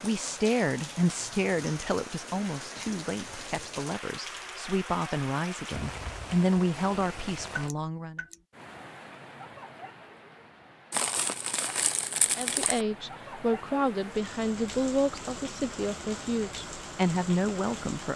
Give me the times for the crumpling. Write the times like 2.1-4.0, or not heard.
10.9-12.8.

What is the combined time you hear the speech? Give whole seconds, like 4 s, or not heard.
14 s.